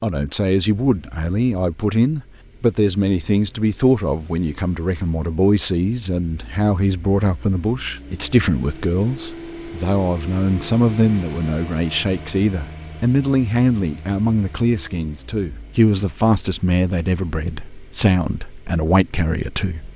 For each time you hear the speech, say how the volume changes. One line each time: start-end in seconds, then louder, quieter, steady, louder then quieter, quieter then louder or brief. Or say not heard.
0.0-19.9 steady.